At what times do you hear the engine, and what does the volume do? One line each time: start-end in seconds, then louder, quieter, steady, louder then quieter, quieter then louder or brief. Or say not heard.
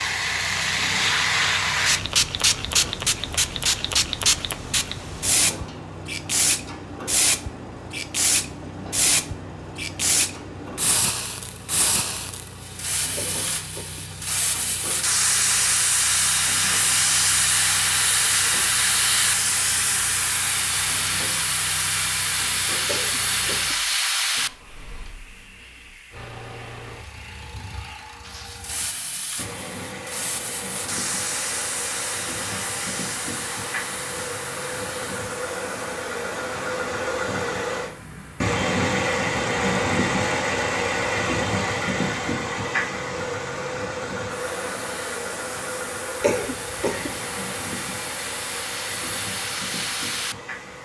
0.0-50.8 louder.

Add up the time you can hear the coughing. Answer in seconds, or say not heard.
3 s.